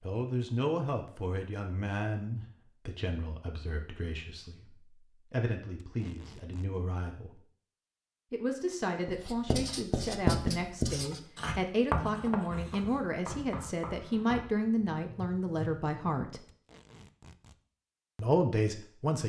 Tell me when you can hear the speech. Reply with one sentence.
The speech can be heard from 0.0 to 7.4 s, from 8.3 to 16.4 s and from 18.1 to 19.2 s.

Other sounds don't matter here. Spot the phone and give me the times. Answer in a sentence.
You can't hear the phone here.